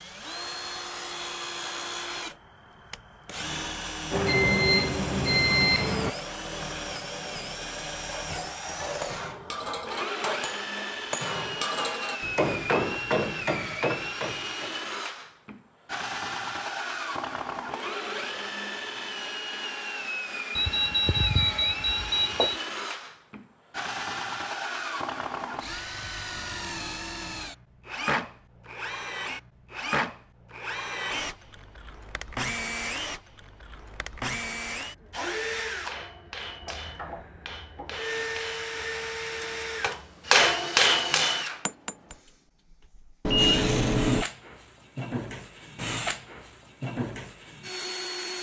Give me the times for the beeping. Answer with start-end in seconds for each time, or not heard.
4.1-6.1, 20.6-22.6, 43.2-44.2.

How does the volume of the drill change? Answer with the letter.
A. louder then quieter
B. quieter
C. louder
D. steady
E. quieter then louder
D.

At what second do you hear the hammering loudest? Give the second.
40 s.